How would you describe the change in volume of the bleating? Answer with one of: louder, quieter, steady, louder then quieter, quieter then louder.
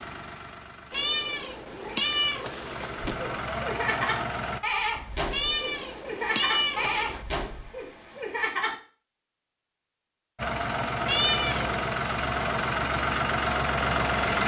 quieter.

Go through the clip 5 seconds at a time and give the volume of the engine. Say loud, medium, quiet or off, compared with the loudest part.
medium, off, loud.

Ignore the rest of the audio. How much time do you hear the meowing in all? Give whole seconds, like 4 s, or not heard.
5 s.